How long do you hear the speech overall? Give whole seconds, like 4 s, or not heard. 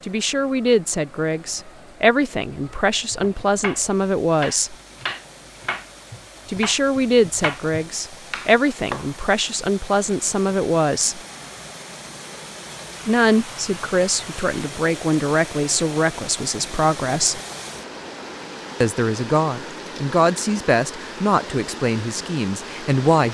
18 s.